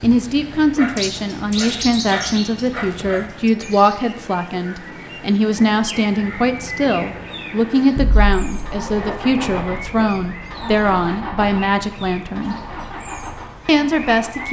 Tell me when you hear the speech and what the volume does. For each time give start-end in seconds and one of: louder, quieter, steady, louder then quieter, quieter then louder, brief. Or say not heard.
0.0-12.6 steady
13.7-14.4 brief.